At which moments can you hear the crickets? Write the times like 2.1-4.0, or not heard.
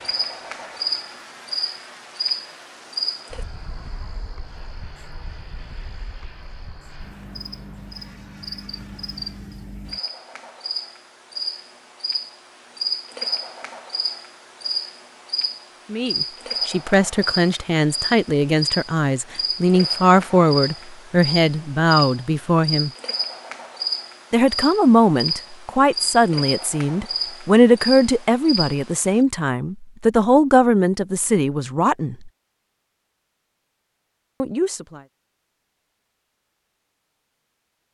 0.0-29.2.